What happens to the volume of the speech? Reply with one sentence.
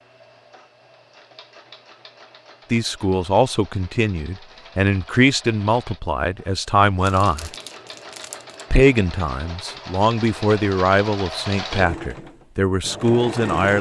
The volume of the speech stays about the same.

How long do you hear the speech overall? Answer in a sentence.
You can hear the speech for 10 seconds altogether.